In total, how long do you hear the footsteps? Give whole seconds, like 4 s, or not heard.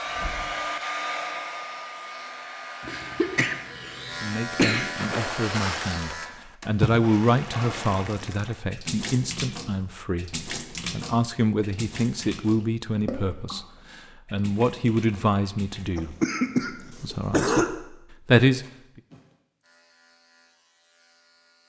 not heard.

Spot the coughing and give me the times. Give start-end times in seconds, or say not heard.
2.8-5.0, 15.9-17.7.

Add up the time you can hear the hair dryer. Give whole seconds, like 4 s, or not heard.
4 s.